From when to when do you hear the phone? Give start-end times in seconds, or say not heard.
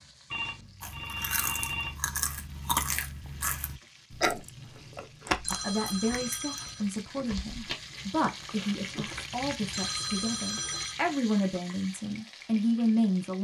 0.3-1.9, 5.4-6.9, 9.7-10.9.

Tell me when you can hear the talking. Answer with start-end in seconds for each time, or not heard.
5.5-13.3.